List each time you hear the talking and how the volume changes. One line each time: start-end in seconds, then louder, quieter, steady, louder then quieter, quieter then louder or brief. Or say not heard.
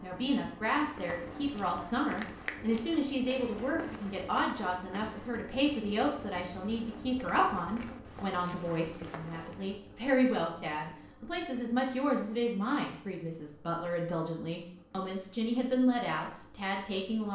0.0-17.3 steady.